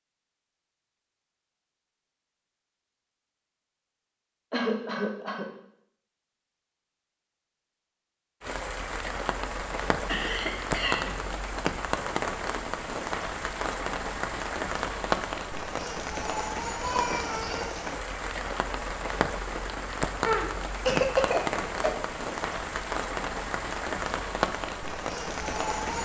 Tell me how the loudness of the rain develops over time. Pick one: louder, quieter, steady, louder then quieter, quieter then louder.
steady.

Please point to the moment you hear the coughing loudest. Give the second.
21 s.